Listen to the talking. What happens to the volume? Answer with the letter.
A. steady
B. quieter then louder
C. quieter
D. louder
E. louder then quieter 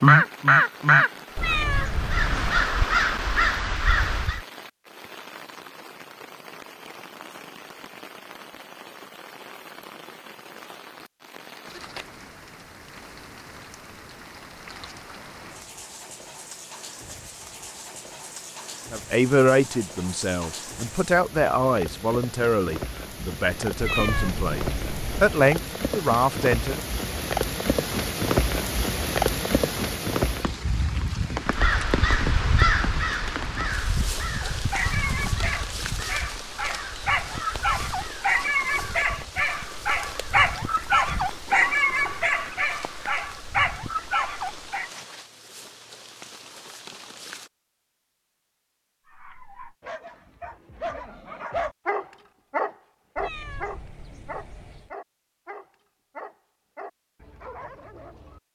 B.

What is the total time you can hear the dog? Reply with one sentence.
The dog can be heard for 20 seconds in total.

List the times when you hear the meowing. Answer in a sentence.
The meowing can be heard from 1.4 to 2.7 s, from 23.8 to 25.4 s and from 53.1 to 55.0 s.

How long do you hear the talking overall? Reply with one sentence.
The talking can be heard for 8 seconds in total.